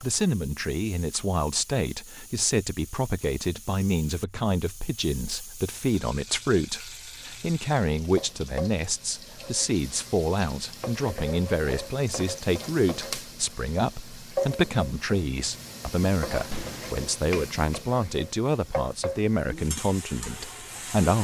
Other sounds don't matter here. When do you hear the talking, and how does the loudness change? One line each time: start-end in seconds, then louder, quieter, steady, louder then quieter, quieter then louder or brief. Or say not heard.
0.0-21.1 steady.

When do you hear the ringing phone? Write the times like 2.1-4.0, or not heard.
16.5-16.9.